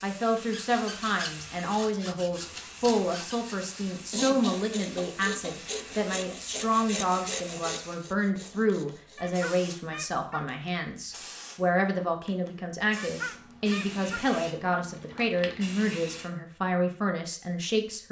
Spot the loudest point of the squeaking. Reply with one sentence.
The volume of the squeaking peaks at 13 seconds.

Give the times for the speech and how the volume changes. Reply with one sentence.
The speech can be heard from 0.0 to 18.0 s, at a steady volume.